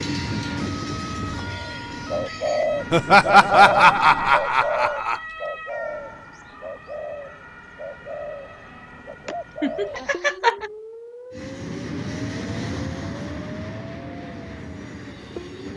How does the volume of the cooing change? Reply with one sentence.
The loudness of the cooing goes down.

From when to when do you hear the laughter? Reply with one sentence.
You can hear the laughter from 2.9 to 5.2 s and from 9.2 to 10.7 s.